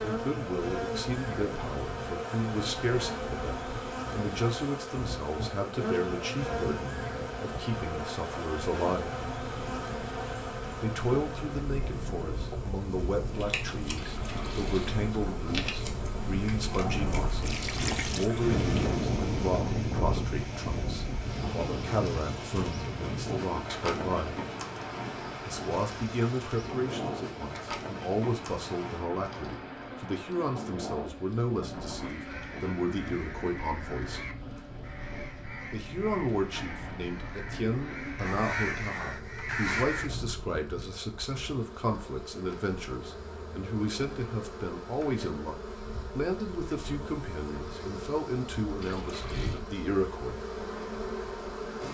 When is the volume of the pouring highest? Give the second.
18 s.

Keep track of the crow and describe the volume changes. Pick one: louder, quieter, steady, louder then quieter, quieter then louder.
louder.